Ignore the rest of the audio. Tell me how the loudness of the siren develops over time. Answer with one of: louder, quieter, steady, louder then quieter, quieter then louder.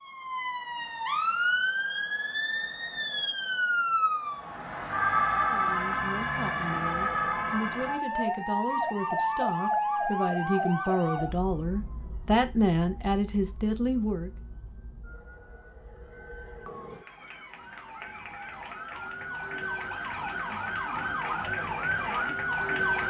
quieter then louder.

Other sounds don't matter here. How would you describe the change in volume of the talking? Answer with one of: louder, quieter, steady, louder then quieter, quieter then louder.
louder.